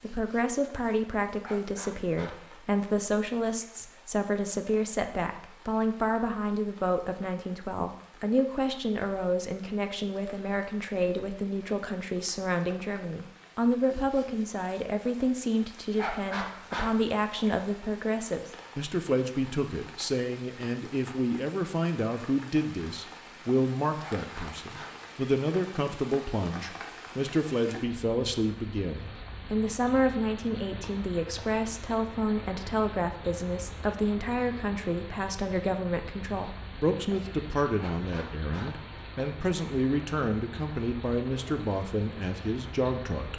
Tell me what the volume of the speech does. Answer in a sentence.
The loudness of the speech stays about the same.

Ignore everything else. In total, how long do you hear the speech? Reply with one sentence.
The speech can be heard for 43 seconds in total.